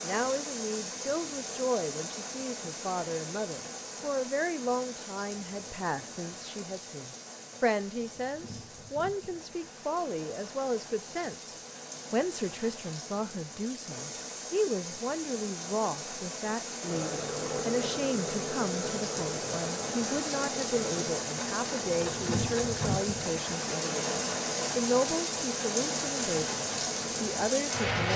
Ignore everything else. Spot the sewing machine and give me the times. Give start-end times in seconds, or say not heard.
16.9-23.1.